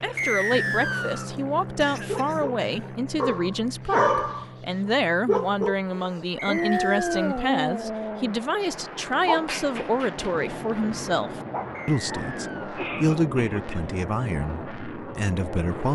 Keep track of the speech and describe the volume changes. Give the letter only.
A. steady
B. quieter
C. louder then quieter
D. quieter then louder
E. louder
A.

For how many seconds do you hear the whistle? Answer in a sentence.
The whistle can be heard for 3 seconds in total.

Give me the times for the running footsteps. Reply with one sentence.
The running footsteps can't be heard in this clip.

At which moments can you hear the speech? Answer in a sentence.
You can hear the speech from 0.0 to 15.9 s.